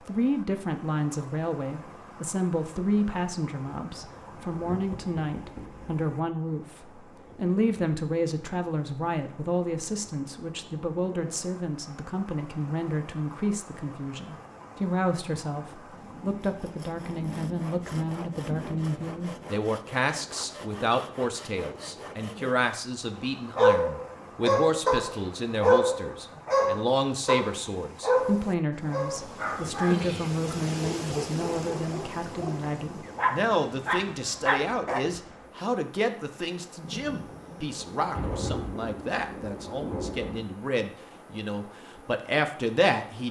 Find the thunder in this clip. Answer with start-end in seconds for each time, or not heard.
3.9-6.0, 15.9-19.6, 36.8-40.5.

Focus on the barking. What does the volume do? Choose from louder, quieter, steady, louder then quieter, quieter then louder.
quieter then louder.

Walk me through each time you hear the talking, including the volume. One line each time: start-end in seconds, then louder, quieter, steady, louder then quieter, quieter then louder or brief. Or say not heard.
0.1-43.2 steady.